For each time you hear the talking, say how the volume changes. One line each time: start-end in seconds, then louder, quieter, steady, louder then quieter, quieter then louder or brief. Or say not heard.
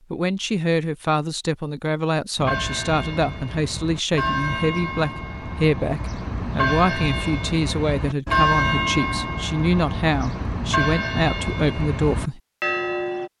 0.1-12.4 steady.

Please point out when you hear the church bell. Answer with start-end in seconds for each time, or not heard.
2.4-13.3.